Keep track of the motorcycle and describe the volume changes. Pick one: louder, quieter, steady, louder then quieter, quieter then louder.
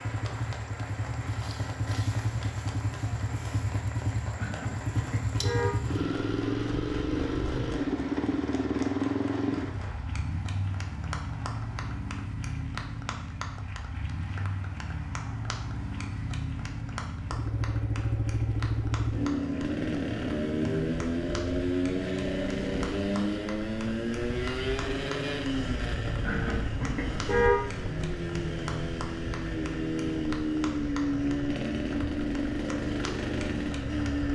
steady.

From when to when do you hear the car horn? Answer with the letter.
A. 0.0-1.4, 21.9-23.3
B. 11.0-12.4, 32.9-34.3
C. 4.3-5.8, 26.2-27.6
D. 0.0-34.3
C.